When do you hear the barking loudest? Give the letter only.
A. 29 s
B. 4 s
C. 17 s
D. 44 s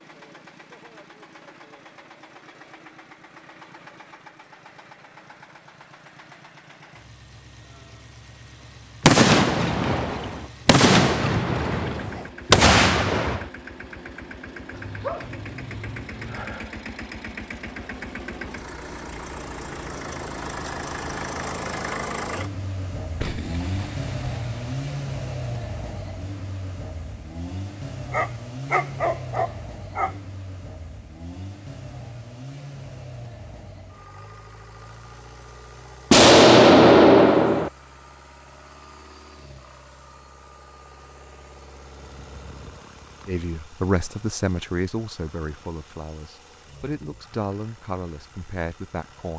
A.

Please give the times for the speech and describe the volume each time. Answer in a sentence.
The speech can be heard from 43.2 to 49.3 s, getting quieter then louder.